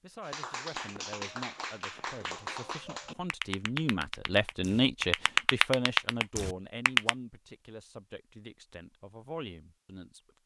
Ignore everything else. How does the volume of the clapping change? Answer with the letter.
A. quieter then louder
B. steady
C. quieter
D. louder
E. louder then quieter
D.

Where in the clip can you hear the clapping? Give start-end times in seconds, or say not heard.
0.2-7.2.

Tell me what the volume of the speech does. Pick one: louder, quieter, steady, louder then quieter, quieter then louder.
louder then quieter.